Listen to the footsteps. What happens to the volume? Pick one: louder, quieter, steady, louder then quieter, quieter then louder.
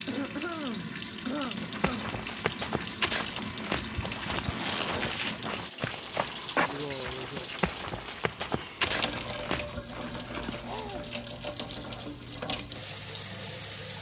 steady.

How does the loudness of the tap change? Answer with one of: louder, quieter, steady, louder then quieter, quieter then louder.
steady.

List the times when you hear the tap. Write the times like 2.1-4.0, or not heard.
0.0-13.9.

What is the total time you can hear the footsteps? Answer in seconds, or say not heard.
8 s.